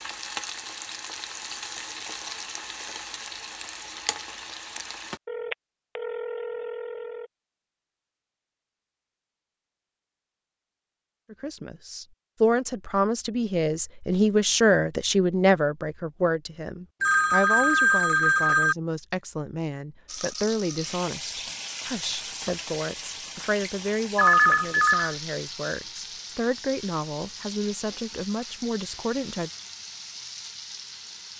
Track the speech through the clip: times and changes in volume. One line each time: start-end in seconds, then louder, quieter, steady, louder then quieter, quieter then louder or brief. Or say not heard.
11.3-29.5 quieter.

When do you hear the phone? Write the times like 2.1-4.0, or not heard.
5.2-7.2, 17.0-18.8, 24.1-25.1.